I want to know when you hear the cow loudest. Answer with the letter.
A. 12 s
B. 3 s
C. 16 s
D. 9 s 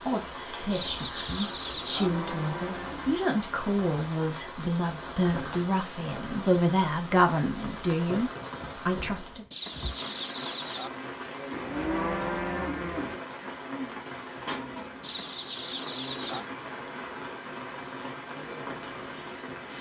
A.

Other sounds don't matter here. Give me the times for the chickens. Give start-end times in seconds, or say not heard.
0.7-2.1, 9.5-10.9, 15.0-16.4.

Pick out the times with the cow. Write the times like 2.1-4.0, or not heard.
1.8-3.2, 11.5-13.2.